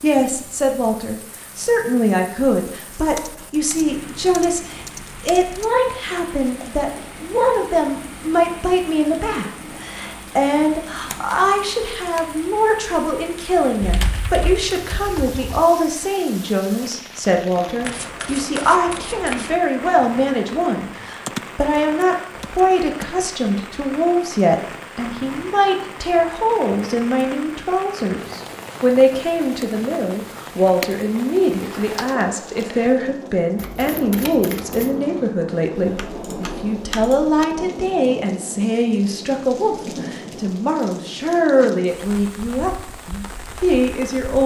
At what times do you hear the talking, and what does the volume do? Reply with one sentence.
The talking can be heard from 0.0 to 44.4 s, at a steady volume.